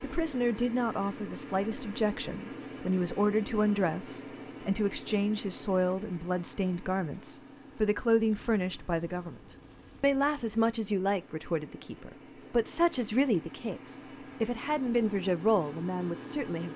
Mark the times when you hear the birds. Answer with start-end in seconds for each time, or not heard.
not heard.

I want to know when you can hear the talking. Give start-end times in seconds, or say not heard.
0.0-9.4, 10.0-16.7.